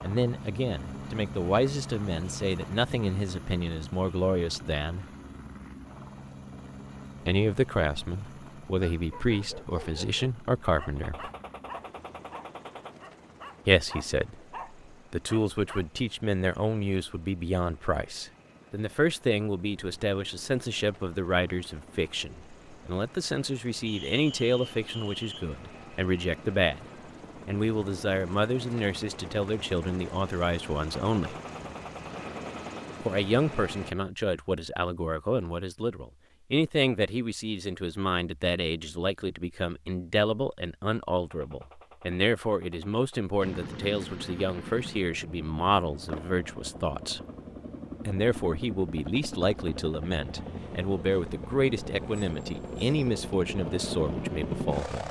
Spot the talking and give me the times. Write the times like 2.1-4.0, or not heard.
0.0-5.0, 7.2-11.3, 13.7-26.9, 27.4-31.4, 33.0-47.2, 48.0-55.0.